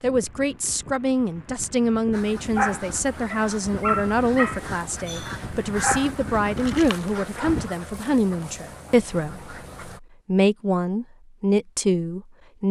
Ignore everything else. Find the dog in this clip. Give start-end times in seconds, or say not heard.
2.5-7.5.